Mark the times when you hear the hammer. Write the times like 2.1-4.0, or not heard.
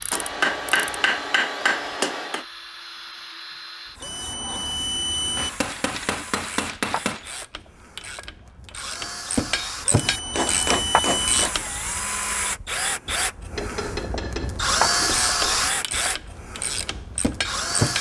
0.1-2.5, 5.3-7.2, 10.1-11.6, 13.5-15.7.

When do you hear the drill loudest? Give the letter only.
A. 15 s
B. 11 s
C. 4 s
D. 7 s
A.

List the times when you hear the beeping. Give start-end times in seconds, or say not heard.
4.0-5.5, 9.9-11.4.